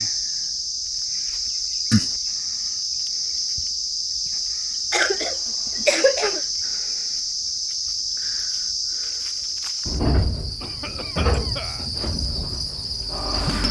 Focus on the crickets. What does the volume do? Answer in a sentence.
The volume of the crickets stays about the same.